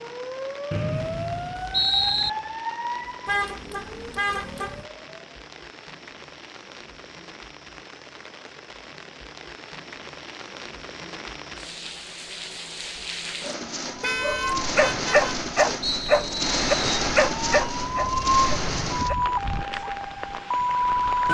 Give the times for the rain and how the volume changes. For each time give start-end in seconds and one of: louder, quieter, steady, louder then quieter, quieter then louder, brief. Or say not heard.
0.0-21.3 louder.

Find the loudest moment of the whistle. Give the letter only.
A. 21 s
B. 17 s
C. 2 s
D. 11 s
C.